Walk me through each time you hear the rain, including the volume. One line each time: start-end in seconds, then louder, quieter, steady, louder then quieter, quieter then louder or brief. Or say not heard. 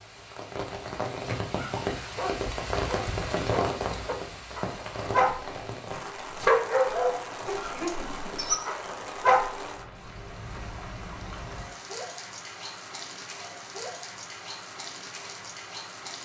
0.0-16.2 quieter.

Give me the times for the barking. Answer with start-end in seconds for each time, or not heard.
1.6-5.5, 6.3-9.7.